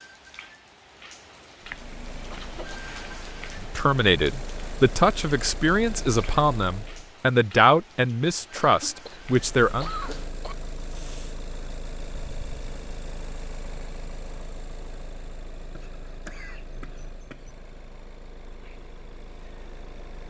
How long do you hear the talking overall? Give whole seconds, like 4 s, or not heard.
6 s.